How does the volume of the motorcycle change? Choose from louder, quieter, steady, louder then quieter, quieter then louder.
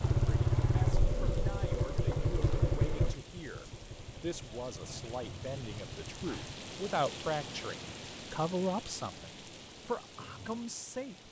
quieter.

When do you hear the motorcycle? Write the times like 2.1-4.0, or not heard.
0.0-6.6.